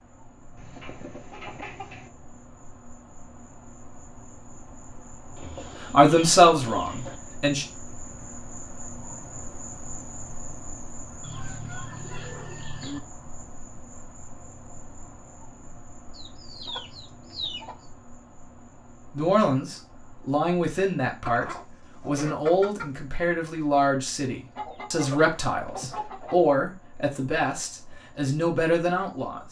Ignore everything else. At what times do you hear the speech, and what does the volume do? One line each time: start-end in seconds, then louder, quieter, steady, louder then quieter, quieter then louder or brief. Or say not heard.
5.9-7.7 brief
19.1-29.4 steady.